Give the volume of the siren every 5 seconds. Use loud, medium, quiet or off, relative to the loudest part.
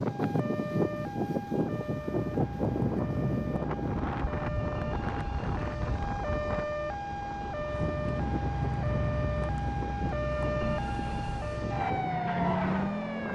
medium, loud, loud.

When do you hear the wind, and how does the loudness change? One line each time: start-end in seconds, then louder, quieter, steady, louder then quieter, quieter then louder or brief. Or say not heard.
0.0-13.2 quieter.